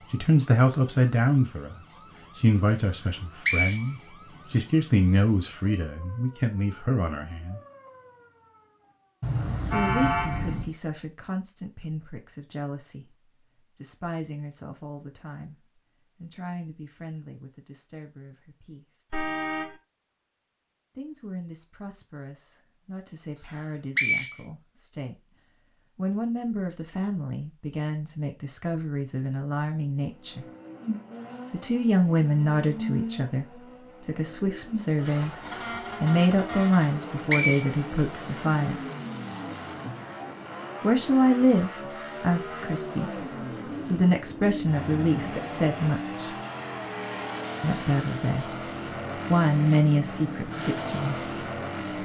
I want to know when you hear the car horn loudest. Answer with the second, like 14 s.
10 s.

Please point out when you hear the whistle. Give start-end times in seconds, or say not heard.
3.0-4.5, 23.5-24.4, 36.9-38.4.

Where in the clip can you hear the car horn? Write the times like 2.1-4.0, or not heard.
9.2-10.8, 19.1-19.8, 35.4-36.9.